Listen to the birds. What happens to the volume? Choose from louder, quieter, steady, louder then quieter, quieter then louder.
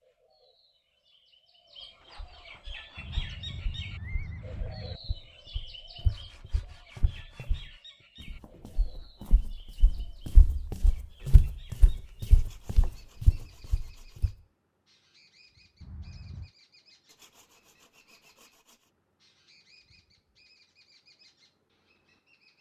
quieter.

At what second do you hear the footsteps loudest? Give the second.
11 s.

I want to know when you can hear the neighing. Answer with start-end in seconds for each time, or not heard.
3.0-5.0, 15.8-16.5.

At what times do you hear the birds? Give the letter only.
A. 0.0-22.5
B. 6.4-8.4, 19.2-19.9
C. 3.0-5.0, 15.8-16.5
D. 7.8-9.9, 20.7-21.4
A.